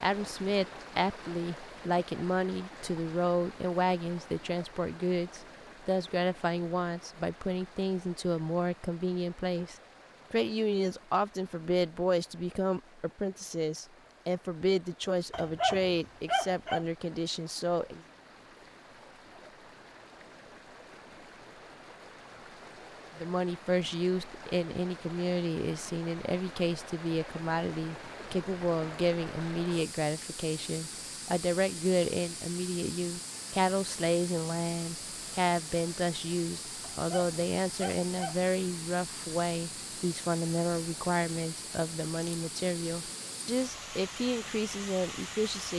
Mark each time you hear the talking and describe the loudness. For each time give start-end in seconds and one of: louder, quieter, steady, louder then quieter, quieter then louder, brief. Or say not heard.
0.0-18.0 steady
23.1-45.7 steady.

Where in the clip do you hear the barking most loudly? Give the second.
16 s.